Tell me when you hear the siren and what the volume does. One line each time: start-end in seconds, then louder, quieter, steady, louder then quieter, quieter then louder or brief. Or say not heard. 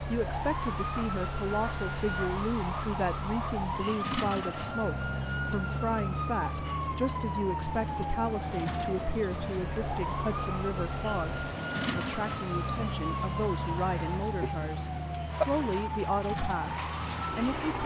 0.0-17.8 steady.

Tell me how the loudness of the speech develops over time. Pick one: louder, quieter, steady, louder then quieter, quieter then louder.
steady.